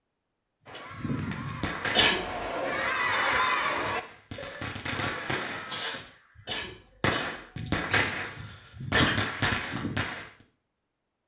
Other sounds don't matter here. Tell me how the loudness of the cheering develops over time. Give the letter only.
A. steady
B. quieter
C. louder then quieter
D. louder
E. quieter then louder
C.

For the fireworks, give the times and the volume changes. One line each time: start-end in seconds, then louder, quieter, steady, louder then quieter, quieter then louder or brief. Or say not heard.
0.7-10.3 quieter then louder.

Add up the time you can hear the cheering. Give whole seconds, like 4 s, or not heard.
5 s.